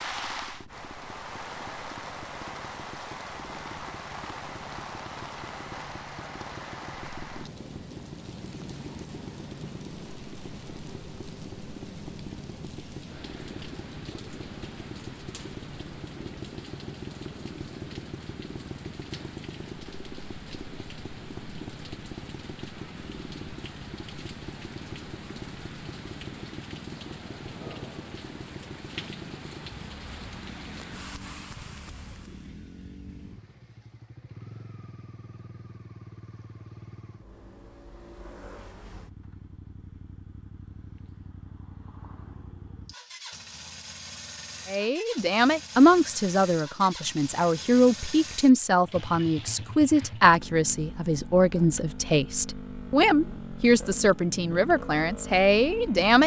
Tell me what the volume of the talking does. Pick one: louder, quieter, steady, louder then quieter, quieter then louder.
steady.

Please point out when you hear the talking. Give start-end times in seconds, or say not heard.
44.6-56.2.